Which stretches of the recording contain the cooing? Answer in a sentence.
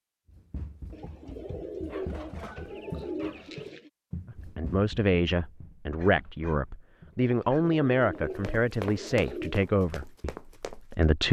You can hear the cooing from 0.9 to 3.9 s and from 7.5 to 9.6 s.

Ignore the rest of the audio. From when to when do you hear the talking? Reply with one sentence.
The talking can be heard from 4.2 to 11.2 s.